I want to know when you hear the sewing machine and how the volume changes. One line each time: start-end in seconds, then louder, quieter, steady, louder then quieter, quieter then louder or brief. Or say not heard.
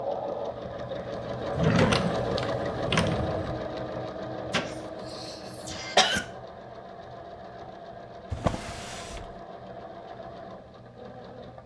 0.0-11.6 quieter.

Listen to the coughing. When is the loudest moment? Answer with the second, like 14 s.
6 s.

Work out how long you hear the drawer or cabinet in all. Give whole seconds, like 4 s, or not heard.
3 s.